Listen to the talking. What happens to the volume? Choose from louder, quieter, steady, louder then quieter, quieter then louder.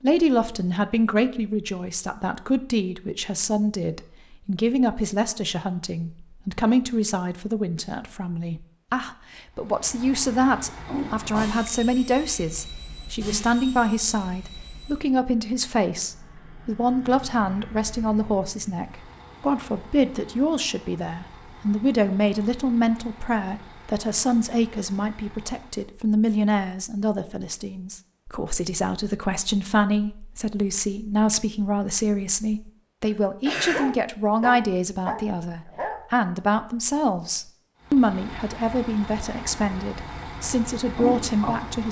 steady.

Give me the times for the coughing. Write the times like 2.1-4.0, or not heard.
33.0-33.9.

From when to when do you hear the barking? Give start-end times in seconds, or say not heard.
33.7-36.0.